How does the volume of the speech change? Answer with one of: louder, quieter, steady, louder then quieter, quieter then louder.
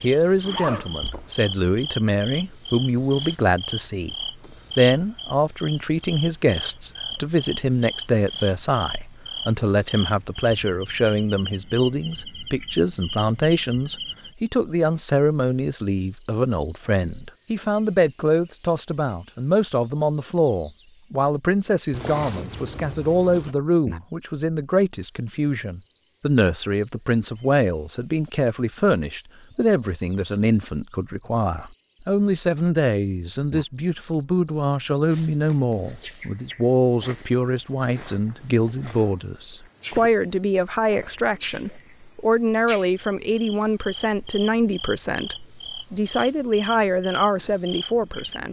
steady.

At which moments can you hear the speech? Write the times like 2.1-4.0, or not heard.
0.0-4.2, 4.8-48.4.